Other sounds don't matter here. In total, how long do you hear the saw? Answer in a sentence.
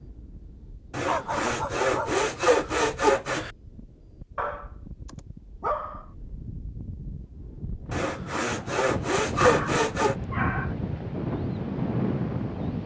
You can hear the saw for 5 seconds altogether.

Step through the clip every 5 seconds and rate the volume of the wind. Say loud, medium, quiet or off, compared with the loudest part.
quiet, medium, loud.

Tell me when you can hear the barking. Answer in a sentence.
The barking can be heard from 1.1 to 2.2 s, from 4.3 to 6.0 s and from 9.3 to 10.8 s.